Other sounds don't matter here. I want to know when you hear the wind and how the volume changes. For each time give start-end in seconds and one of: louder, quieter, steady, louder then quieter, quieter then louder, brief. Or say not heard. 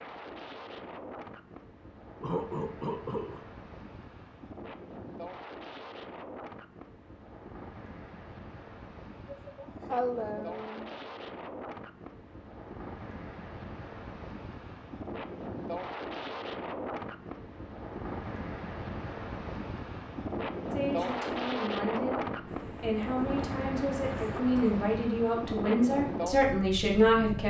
0.0-27.4 louder.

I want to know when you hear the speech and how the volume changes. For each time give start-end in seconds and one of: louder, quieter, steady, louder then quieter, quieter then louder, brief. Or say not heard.
20.7-27.4 louder.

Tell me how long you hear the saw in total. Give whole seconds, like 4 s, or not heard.
not heard.